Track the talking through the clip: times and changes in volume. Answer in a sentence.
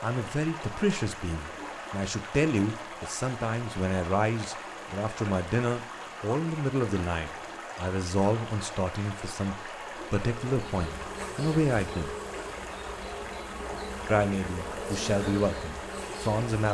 You can hear the talking from 0.0 to 12.2 s, at a steady volume; and briefly from 14.1 to 16.6 s.